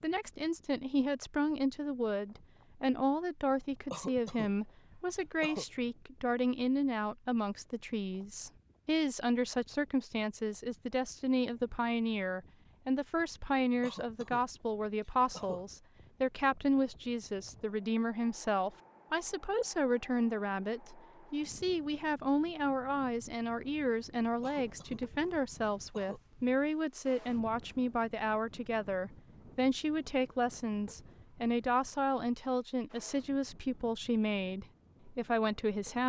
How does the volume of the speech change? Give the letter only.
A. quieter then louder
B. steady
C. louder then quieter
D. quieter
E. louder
B.